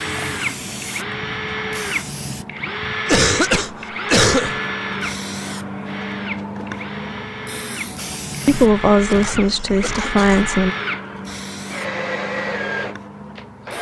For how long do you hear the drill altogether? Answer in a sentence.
The drill can be heard for 14 seconds in total.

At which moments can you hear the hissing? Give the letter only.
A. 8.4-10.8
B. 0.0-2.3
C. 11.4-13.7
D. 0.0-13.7
D.